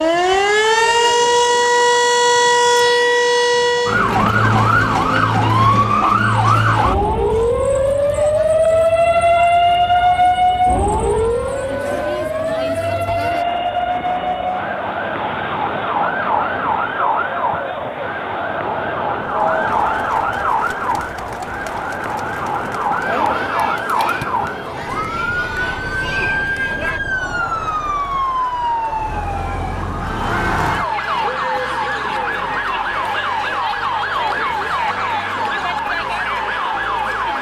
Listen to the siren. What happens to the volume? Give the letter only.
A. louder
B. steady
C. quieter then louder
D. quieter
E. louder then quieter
D.